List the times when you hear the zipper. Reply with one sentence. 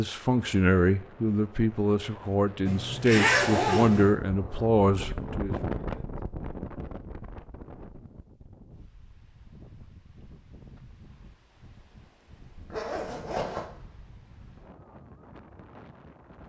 The zipper can be heard from 2.6 to 4.1 s and from 12.7 to 13.7 s.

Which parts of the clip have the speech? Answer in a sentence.
The speech can be heard from 0.0 to 5.6 s.